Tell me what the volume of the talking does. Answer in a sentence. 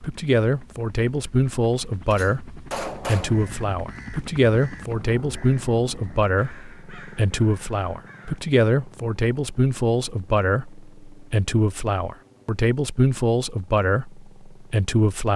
The loudness of the talking stays about the same.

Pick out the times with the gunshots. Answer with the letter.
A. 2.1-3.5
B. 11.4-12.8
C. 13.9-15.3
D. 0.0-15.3
A.